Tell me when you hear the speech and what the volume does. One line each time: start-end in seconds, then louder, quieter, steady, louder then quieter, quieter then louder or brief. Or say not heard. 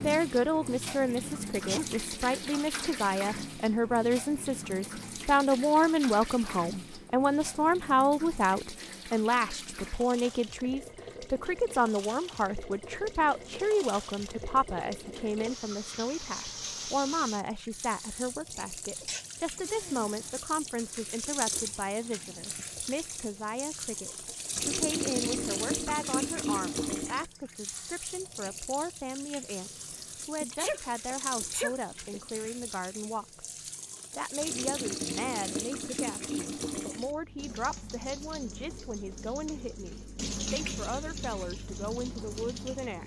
0.0-43.0 quieter.